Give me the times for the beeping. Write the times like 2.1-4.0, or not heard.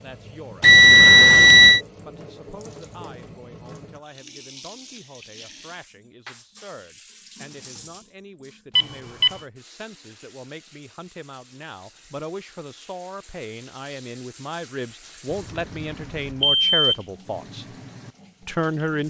0.6-1.8, 8.8-9.4, 15.3-16.9.